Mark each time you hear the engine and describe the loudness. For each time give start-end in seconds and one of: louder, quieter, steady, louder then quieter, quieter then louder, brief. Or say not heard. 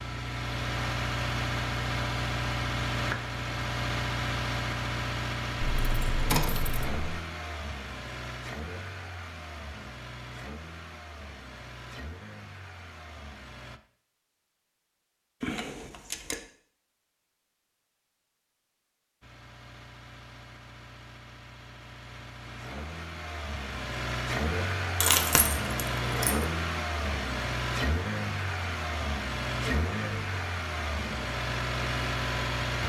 0.0-13.8 quieter
19.2-32.8 louder.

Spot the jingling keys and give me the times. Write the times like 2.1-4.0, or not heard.
5.6-7.2, 15.4-16.4, 25.0-26.4.